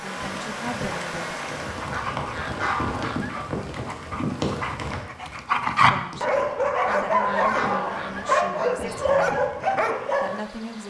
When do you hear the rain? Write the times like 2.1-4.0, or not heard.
0.0-10.8.